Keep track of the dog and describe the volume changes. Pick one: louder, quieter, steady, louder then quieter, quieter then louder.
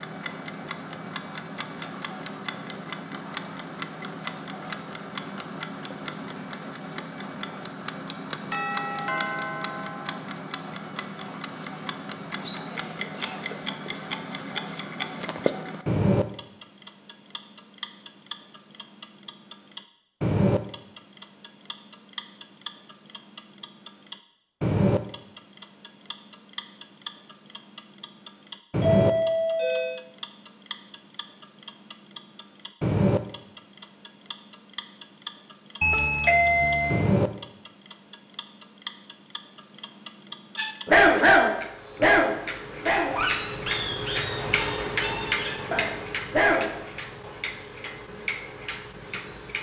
quieter then louder.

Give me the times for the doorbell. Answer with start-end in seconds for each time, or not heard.
8.5-10.2, 28.8-30.0, 35.8-37.0.